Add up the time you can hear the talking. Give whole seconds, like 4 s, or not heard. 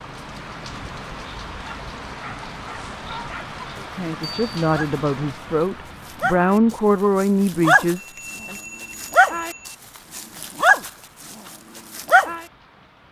5 s.